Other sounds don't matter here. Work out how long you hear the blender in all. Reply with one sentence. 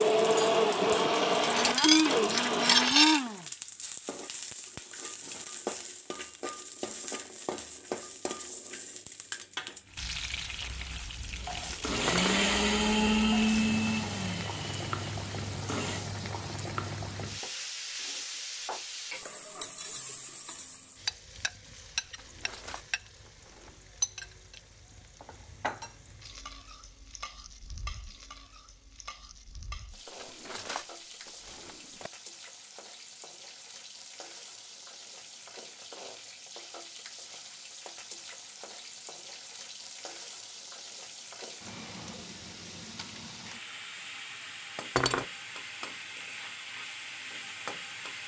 The blender can be heard for 8 seconds in total.